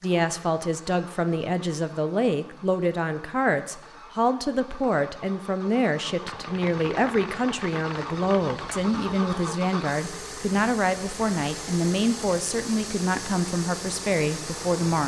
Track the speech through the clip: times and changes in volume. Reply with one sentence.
The speech can be heard from 0.0 to 15.0 s, at a steady volume.